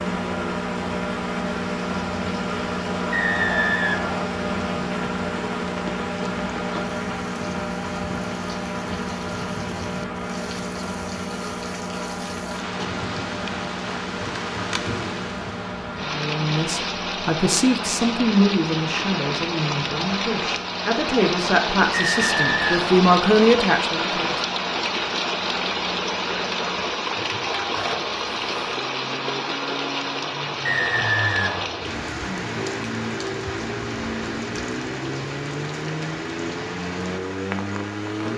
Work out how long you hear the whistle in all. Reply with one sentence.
You can hear the whistle for 4 seconds altogether.